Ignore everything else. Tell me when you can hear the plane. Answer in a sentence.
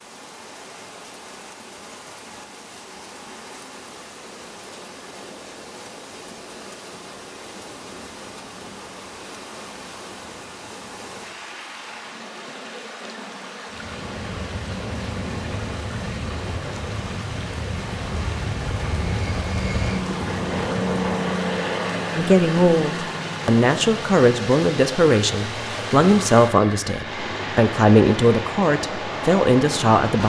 The plane can be heard from 13.7 to 30.2 s.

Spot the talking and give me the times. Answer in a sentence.
You can hear the talking from 22.1 to 30.2 s.